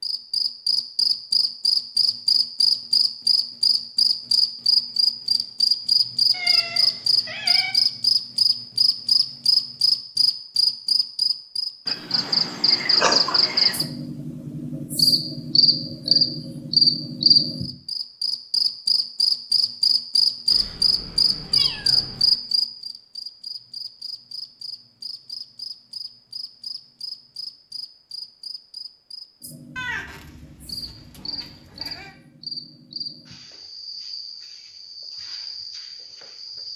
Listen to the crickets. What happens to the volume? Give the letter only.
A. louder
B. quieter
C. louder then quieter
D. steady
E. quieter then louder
B.